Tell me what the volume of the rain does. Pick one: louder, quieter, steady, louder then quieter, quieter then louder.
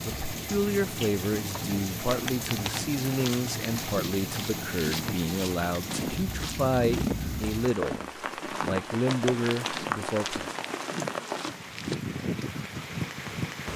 steady.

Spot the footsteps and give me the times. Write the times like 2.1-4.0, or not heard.
1.4-11.9.